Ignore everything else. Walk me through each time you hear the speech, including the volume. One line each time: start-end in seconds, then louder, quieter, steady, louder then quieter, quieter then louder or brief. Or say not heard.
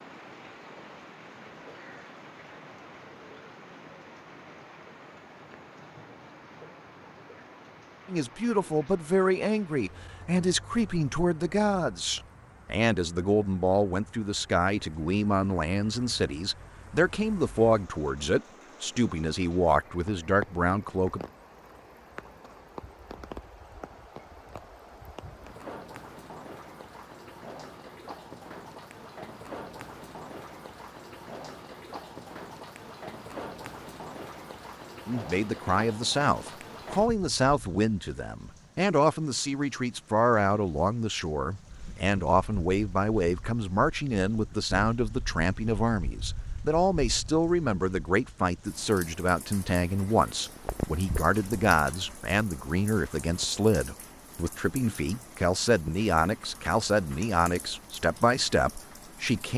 8.1-21.2 steady
35.0-59.5 steady.